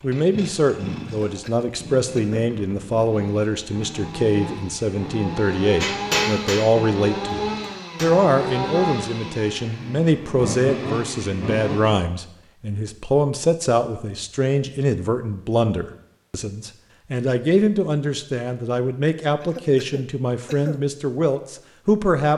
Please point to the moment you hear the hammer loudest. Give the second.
6 s.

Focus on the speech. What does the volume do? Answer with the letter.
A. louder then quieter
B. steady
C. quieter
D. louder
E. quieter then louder
B.